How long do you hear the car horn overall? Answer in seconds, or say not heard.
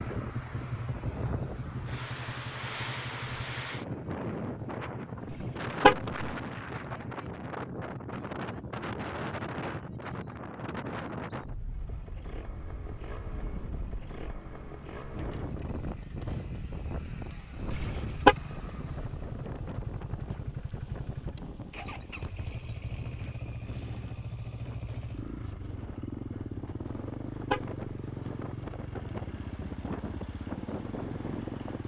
3 s.